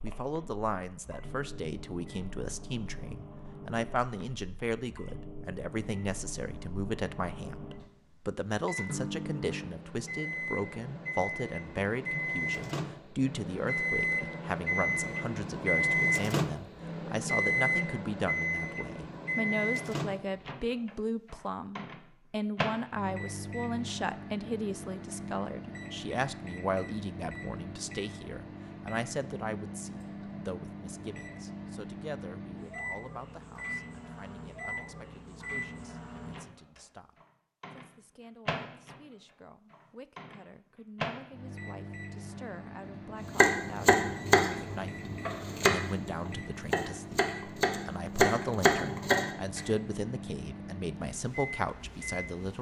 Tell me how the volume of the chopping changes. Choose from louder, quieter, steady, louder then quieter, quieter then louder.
quieter then louder.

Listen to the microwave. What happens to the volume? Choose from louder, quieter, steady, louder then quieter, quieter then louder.
louder then quieter.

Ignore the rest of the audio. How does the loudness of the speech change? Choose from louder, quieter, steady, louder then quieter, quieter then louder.
quieter then louder.